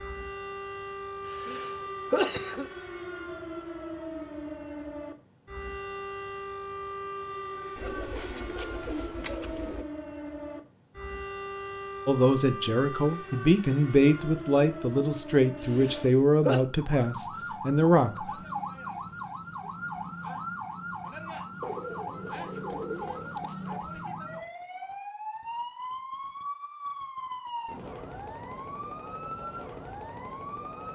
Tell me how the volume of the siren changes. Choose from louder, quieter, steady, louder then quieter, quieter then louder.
steady.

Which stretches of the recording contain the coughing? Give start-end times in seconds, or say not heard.
1.2-2.6, 15.6-16.6.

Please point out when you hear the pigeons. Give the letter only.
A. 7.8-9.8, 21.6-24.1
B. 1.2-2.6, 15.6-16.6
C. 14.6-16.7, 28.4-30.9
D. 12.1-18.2
A.